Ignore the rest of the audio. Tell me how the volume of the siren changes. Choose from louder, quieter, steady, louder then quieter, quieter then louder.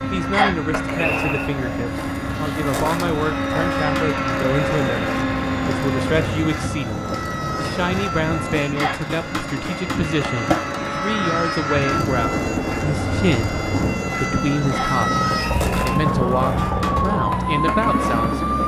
louder.